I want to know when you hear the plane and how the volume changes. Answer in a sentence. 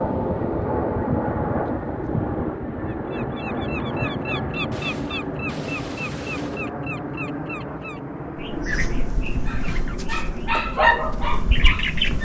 The plane can be heard from 0.0 to 12.1 s, getting quieter.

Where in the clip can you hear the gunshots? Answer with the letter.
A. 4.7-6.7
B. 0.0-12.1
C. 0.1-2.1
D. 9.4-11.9
A.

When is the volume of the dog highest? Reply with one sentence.
The volume of the dog peaks at 11 seconds.